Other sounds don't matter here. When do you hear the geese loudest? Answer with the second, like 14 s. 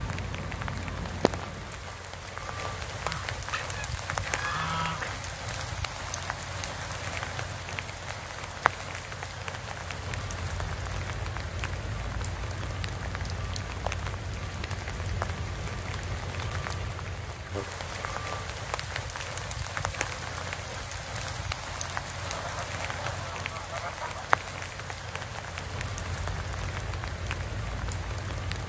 5 s.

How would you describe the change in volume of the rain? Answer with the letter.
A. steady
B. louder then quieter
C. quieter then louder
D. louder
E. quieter
A.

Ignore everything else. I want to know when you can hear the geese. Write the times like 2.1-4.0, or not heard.
3.0-5.4, 22.2-24.2.